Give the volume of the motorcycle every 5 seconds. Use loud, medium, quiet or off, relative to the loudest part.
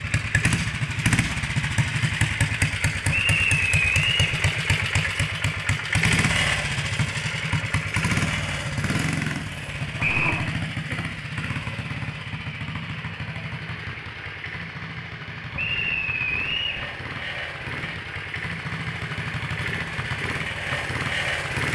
loud, loud, medium, medium, loud.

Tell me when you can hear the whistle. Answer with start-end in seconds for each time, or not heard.
3.1-4.3, 10.0-10.4, 15.6-16.9.